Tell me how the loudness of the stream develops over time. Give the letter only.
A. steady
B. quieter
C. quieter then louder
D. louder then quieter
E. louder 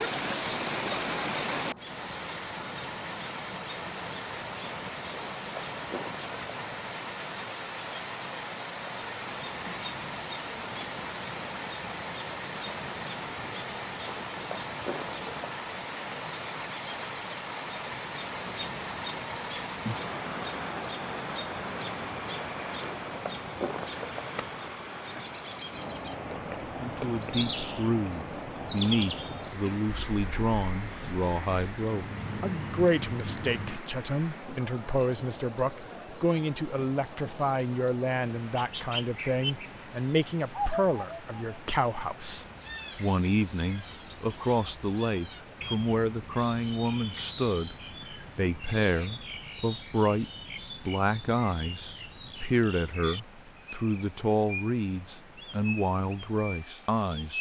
B.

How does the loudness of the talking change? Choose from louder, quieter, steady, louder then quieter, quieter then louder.
steady.